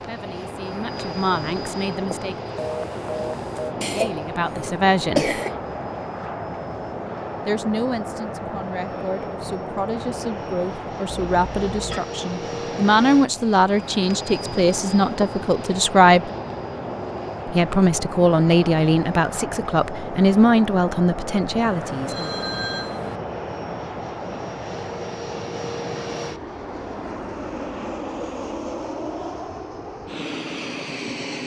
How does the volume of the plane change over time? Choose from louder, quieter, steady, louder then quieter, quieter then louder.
steady.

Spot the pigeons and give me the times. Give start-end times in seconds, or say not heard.
not heard.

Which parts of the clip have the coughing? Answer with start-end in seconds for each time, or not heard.
3.8-5.6.